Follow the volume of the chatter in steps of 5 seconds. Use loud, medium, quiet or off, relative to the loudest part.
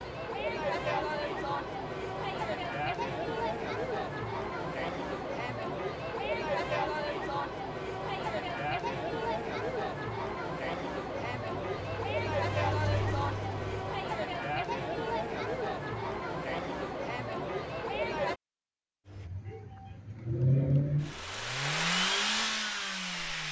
loud, loud, loud, loud, off.